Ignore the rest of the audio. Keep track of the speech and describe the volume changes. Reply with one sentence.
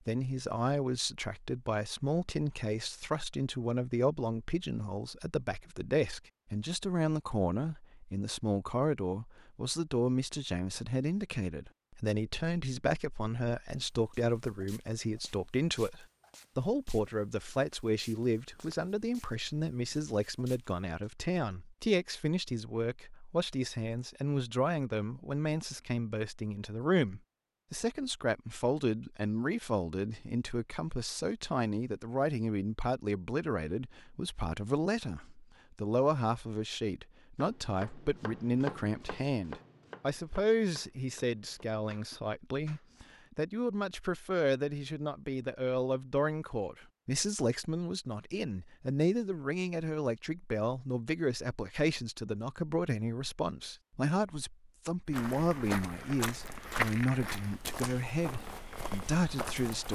The loudness of the speech stays about the same.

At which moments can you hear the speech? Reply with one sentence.
The speech can be heard from 0.1 to 59.9 s.